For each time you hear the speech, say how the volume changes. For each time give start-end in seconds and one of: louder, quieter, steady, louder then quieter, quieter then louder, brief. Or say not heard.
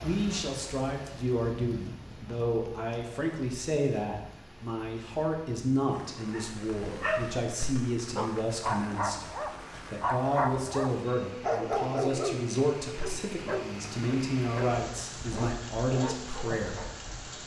0.0-16.8 steady.